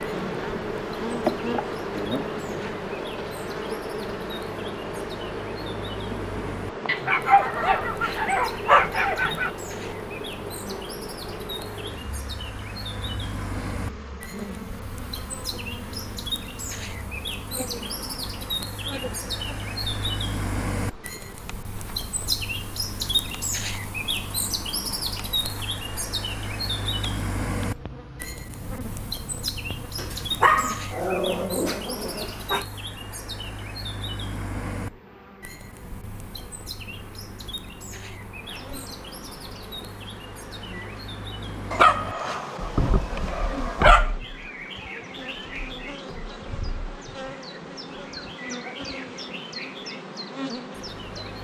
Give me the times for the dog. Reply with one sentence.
You can hear the dog from 6.8 to 9.5 s, from 29.9 to 32.6 s and from 41.7 to 44.1 s.